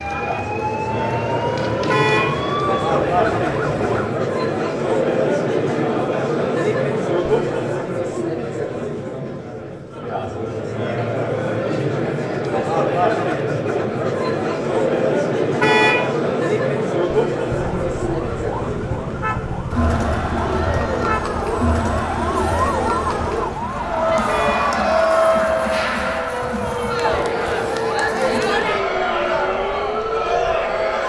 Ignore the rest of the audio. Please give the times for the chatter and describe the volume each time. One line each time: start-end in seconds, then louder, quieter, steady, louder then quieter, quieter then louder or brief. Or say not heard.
0.0-31.0 steady.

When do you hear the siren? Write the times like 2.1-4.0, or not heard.
0.0-4.2, 17.4-31.0.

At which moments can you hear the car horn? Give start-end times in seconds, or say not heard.
1.9-2.4, 15.6-16.1, 24.2-24.7.